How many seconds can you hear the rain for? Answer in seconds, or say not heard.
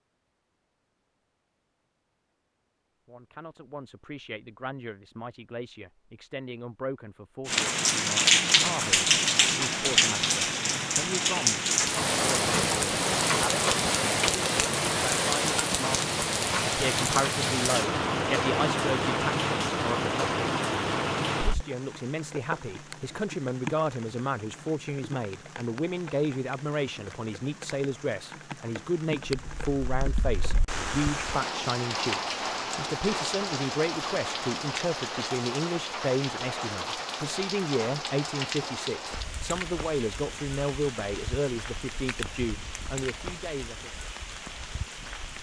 38 s.